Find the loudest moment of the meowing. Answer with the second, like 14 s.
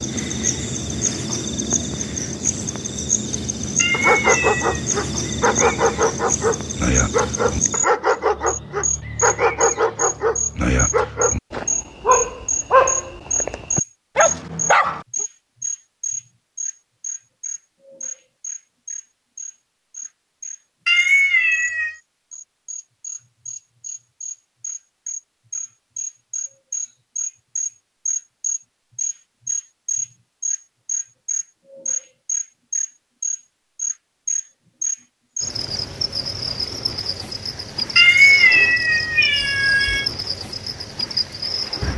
38 s.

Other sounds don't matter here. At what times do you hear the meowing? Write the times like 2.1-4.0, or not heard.
3.8-4.8, 20.9-21.9, 38.0-40.0.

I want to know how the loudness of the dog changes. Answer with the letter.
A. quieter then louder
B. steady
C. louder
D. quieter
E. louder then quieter
B.